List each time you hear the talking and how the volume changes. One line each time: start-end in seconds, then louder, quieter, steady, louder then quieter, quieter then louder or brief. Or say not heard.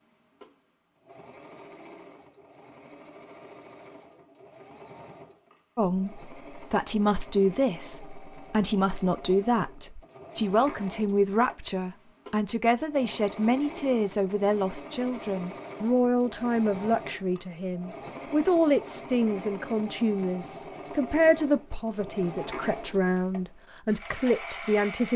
5.8-25.1 steady.